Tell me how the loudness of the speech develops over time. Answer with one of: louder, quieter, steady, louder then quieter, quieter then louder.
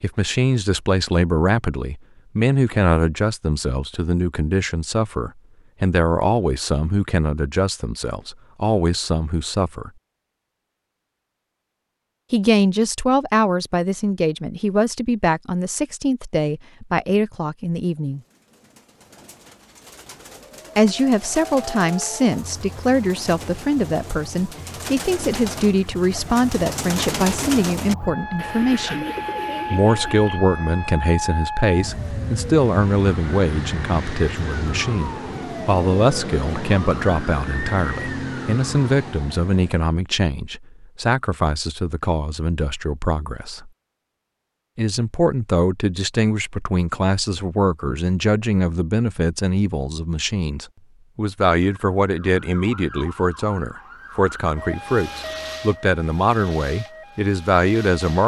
steady.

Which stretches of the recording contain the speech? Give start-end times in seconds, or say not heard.
0.0-9.9, 12.3-18.2, 20.8-29.1, 29.7-43.7, 44.8-58.2.